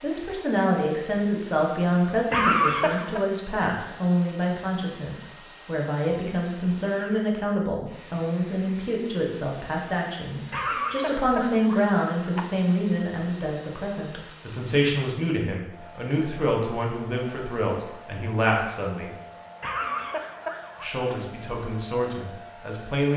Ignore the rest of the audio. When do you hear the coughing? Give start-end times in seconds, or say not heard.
2.3-3.2, 10.5-12.5, 19.6-21.1.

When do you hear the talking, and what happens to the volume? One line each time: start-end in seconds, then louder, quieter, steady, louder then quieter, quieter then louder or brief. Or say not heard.
0.0-19.1 steady
20.8-23.1 brief.